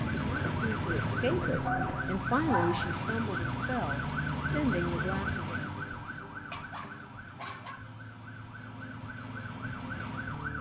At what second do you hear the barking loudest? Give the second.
3 s.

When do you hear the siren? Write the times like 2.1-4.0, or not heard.
0.0-10.5.